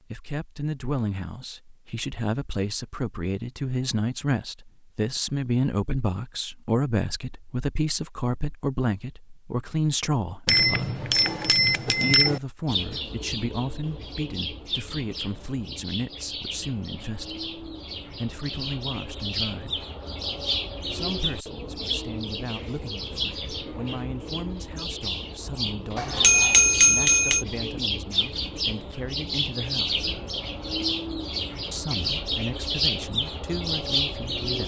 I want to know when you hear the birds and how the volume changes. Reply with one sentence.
The birds can be heard from 12.7 to 34.6 s, getting louder.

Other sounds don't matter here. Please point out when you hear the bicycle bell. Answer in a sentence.
The bicycle bell can be heard from 10.4 to 12.4 s and from 25.9 to 27.4 s.